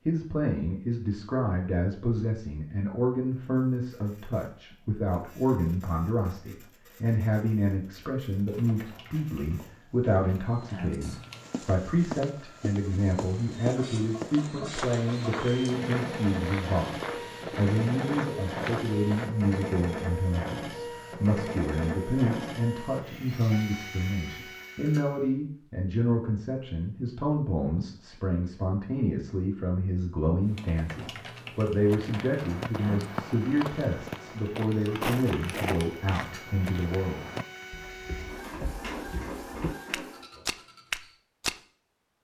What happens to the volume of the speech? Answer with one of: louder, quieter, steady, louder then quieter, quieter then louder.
steady.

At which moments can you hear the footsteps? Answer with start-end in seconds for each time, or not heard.
9.4-19.3, 31.8-41.6.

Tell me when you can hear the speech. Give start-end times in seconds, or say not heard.
0.1-37.2.